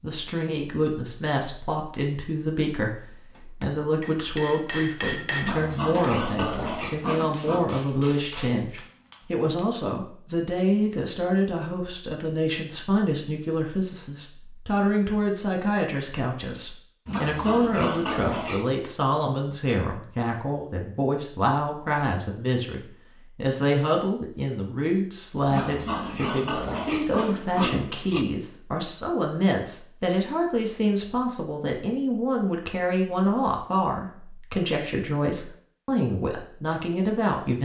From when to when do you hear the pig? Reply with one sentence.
You can hear the pig from 5.3 to 7.7 s, from 17.1 to 18.6 s and from 25.4 to 28.2 s.